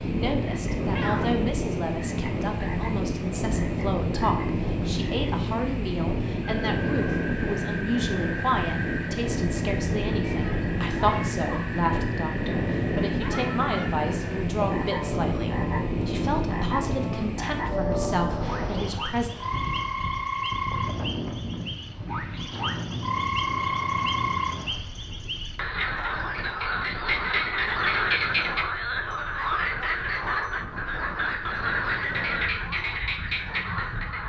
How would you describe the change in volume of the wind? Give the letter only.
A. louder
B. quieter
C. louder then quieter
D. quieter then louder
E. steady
B.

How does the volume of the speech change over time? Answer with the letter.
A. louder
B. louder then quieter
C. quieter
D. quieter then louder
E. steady
E.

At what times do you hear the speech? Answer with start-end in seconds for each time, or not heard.
0.0-19.3.